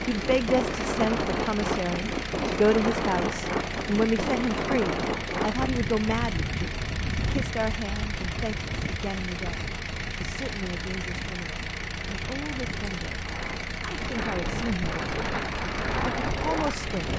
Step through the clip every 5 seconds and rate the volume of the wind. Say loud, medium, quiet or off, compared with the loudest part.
loud, medium, medium, loud.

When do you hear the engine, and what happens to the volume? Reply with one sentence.
You can hear the engine from 0.0 to 17.1 s, at a steady volume.